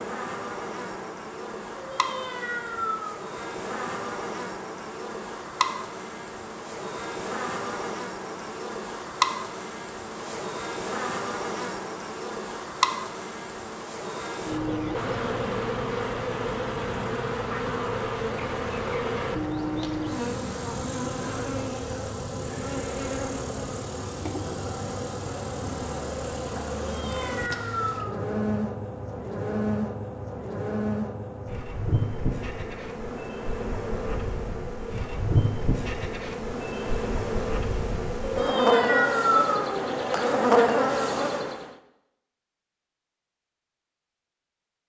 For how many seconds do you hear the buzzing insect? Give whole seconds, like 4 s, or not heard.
42 s.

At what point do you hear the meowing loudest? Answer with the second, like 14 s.
39 s.